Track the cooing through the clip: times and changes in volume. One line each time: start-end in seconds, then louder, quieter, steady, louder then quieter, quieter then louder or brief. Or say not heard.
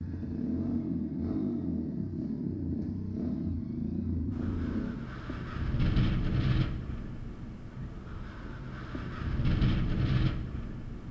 not heard.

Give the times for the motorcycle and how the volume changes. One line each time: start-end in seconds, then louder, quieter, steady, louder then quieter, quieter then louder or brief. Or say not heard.
0.0-5.0 steady.